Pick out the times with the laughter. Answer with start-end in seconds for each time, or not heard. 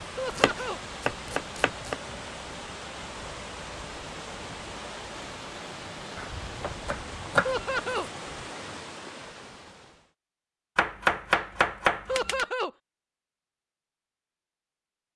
0.1-0.8, 7.4-8.1, 12.1-12.7.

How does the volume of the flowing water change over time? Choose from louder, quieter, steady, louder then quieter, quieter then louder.
steady.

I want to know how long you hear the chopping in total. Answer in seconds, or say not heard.
5 s.